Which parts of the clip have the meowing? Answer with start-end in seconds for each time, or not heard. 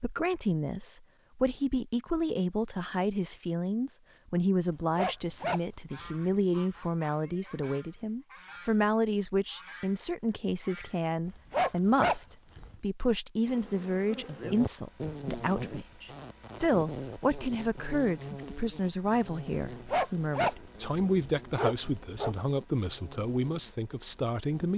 not heard.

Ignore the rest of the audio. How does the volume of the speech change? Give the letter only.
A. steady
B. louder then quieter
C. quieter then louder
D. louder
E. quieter
A.